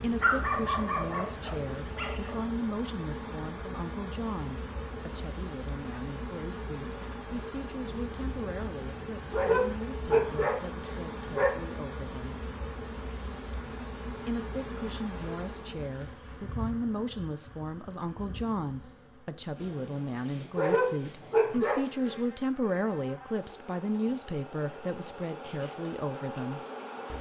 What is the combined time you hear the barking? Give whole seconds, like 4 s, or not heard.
6 s.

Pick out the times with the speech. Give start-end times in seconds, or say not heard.
0.0-12.4, 14.2-26.6.